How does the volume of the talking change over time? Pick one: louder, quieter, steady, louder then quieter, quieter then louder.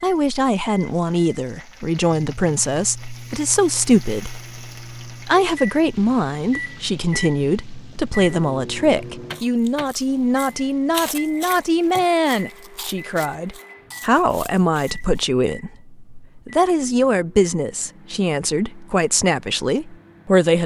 steady.